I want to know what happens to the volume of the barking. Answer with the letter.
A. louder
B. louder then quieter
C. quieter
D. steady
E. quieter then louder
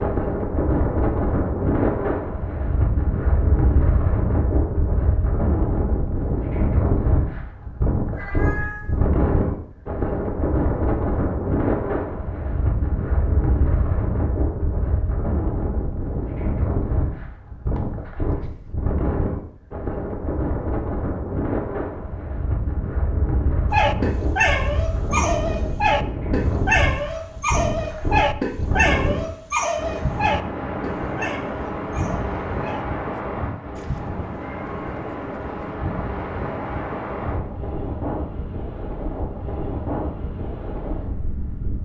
C.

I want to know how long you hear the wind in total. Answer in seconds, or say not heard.
42 s.